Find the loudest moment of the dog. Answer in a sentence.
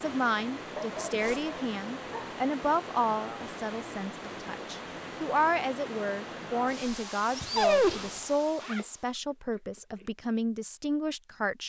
The loudest moment of the dog is at 8 seconds.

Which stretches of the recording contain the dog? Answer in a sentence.
You can hear the dog from 0.8 to 2.4 s and from 7.3 to 8.2 s.